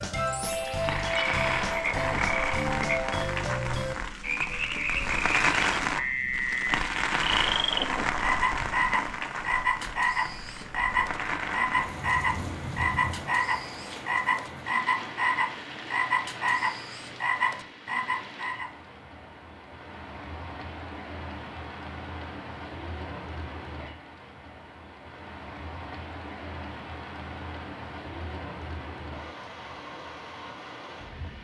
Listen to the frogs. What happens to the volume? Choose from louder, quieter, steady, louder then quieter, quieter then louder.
steady.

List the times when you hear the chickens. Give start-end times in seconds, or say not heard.
not heard.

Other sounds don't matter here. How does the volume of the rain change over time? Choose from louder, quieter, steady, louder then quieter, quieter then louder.
quieter.